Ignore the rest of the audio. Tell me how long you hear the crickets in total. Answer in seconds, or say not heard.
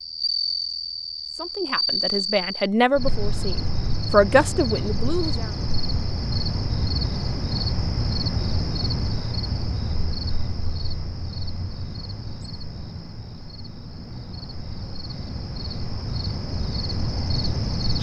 18 s.